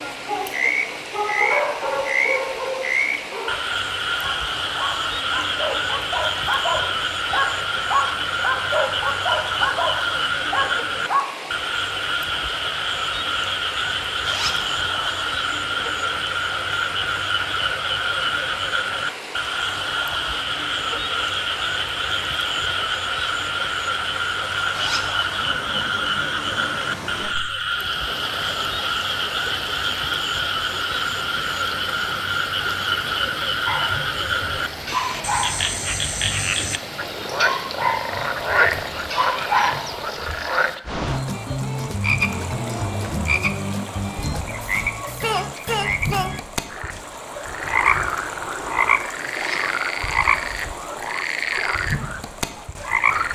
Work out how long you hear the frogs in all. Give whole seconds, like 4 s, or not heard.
53 s.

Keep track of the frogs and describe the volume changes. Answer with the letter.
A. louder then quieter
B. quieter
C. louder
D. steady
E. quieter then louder
D.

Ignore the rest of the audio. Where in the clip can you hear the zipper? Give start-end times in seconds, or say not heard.
14.2-14.7, 24.7-25.2, 49.3-49.8.